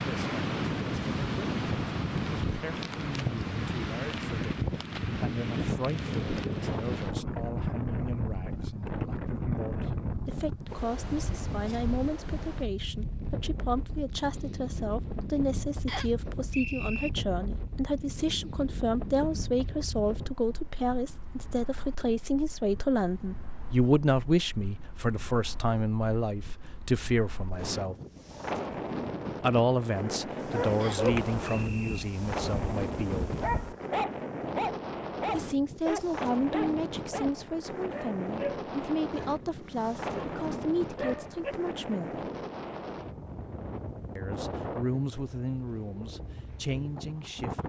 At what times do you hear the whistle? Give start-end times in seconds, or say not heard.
15.8-17.1, 30.8-32.0.